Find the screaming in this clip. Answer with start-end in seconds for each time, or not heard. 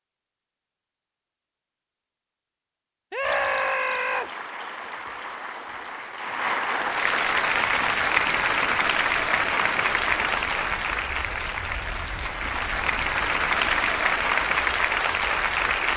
3.1-4.3.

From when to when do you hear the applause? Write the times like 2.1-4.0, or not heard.
3.2-15.9.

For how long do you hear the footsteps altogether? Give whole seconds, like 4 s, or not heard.
not heard.